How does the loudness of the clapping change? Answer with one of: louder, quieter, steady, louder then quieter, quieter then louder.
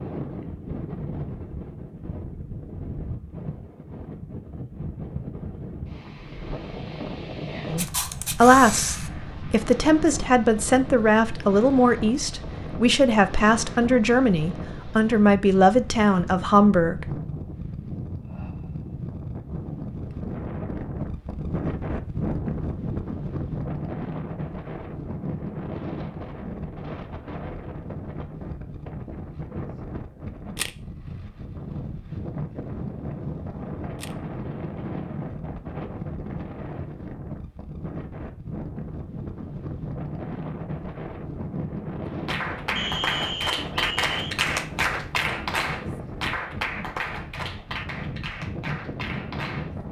quieter.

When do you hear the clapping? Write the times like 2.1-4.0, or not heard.
42.1-49.8.